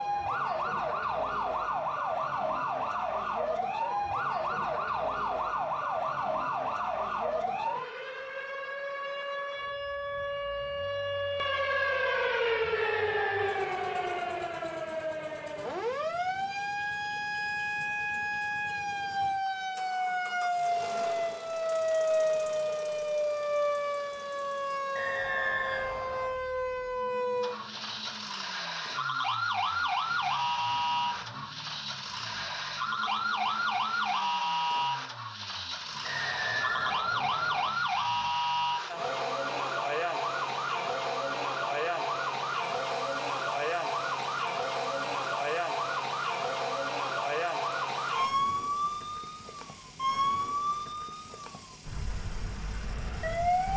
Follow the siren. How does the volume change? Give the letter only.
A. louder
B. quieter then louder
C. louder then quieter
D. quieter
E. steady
E.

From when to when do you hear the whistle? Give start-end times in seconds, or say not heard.
12.7-14.5, 24.9-26.4, 36.0-37.7.